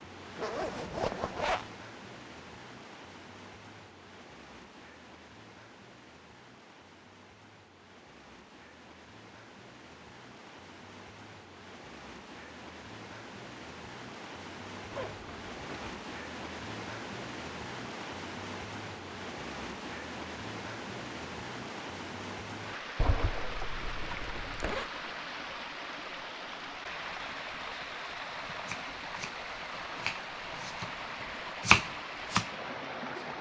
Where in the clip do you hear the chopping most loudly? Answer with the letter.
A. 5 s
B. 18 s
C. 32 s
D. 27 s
C.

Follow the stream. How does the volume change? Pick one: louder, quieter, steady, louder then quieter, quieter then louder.
louder.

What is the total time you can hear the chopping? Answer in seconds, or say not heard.
4 s.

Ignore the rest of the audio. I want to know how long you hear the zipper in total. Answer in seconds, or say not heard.
4 s.